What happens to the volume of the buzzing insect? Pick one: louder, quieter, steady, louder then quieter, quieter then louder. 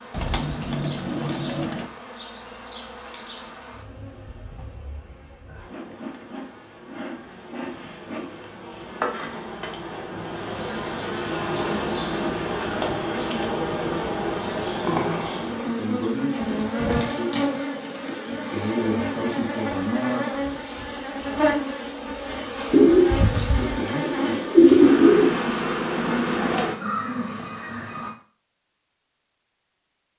louder.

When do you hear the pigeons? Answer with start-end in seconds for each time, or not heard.
0.1-1.9, 22.7-25.4.